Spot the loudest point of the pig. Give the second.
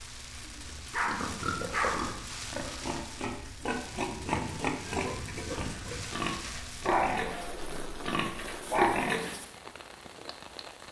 9 s.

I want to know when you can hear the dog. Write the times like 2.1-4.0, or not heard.
0.5-2.2, 6.8-9.1.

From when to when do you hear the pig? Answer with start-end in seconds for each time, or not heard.
1.0-9.5.